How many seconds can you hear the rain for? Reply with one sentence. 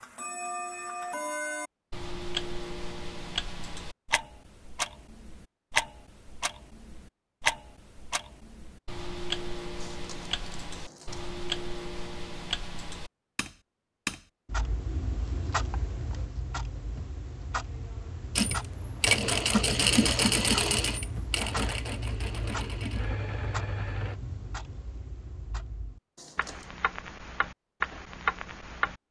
You can't hear the rain here.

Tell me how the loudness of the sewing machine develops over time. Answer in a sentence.
The volume of the sewing machine goes down.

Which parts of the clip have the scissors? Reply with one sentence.
You can hear the scissors from 9.8 to 11.3 s and from 26.1 to 26.8 s.